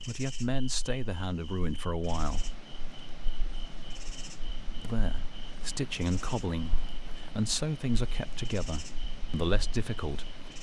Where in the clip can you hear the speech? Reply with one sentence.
The speech can be heard from 0.1 to 2.5 s and from 4.8 to 10.4 s.